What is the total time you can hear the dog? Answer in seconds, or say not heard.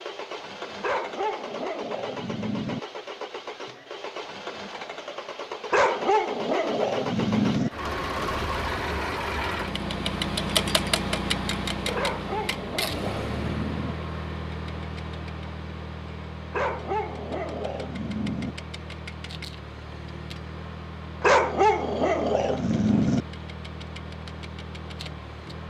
10 s.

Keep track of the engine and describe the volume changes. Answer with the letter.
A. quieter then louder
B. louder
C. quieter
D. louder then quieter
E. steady
D.